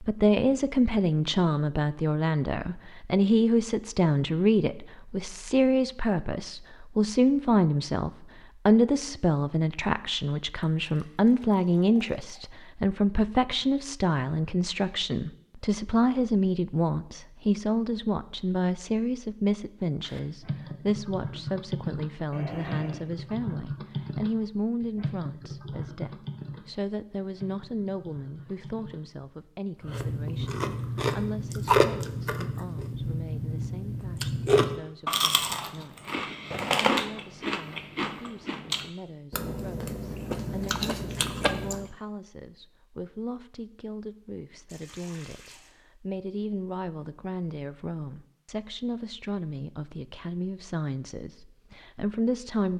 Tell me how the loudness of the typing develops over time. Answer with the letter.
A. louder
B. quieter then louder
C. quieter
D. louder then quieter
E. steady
C.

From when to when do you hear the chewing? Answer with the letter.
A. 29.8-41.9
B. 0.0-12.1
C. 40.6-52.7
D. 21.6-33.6
A.